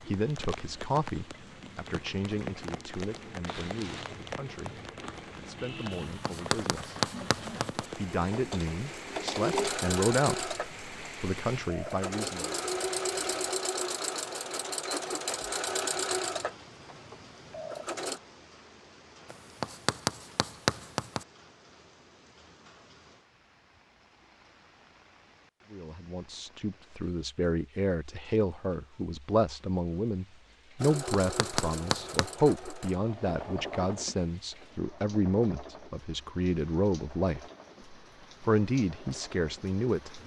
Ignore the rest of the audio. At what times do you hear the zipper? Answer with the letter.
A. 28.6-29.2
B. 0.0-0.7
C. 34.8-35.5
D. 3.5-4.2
D.